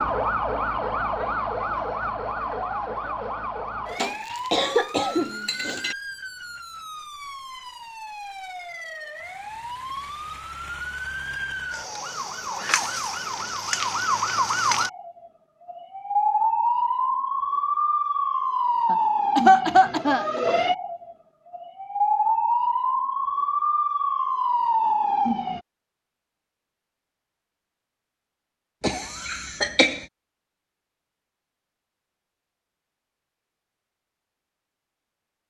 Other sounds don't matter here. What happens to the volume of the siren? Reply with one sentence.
The volume of the siren goes down, then up.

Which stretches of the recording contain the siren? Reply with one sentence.
You can hear the siren from 0.0 to 25.6 s.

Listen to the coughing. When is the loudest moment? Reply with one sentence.
The loudest moment of the coughing is at 20 seconds.